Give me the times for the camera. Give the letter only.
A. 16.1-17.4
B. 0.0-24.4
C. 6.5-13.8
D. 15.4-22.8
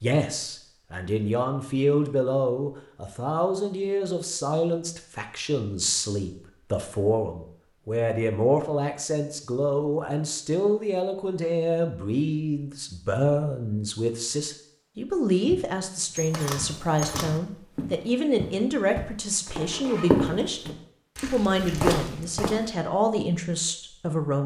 A.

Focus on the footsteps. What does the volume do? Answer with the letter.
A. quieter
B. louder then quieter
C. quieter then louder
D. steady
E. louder
E.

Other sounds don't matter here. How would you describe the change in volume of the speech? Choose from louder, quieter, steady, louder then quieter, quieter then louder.
steady.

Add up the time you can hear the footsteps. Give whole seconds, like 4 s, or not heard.
7 s.